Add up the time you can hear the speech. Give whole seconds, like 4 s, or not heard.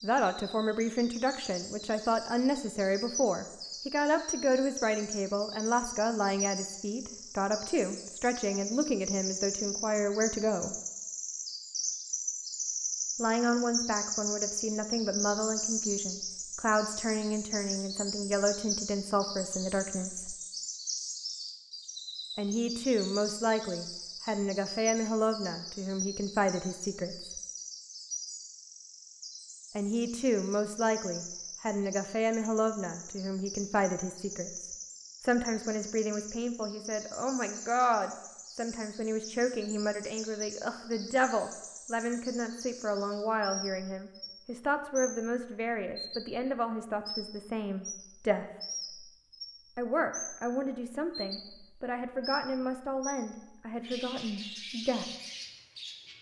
47 s.